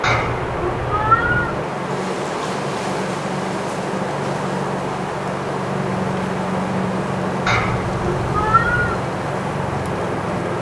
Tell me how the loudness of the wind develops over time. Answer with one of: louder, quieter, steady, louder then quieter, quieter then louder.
steady.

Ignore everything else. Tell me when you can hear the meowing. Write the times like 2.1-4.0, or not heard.
0.0-1.6, 7.5-9.0.